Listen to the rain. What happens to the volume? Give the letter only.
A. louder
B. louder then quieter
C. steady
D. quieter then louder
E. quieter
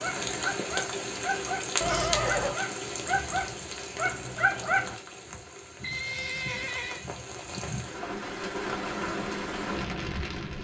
D.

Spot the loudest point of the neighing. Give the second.
2 s.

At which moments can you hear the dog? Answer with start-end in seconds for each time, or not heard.
0.0-5.0.